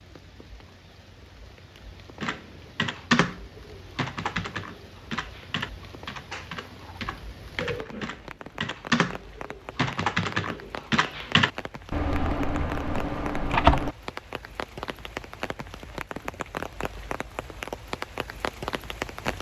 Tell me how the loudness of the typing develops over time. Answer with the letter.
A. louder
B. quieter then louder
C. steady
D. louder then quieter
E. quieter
B.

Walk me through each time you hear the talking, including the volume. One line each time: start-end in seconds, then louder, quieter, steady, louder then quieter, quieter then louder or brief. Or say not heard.
not heard.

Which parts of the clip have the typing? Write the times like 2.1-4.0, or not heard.
2.2-13.9.